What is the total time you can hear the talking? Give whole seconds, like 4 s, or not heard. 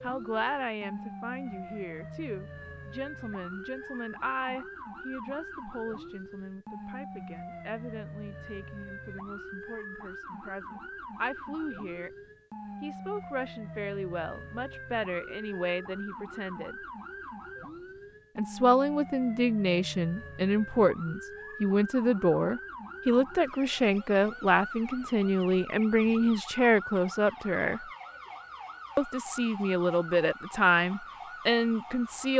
29 s.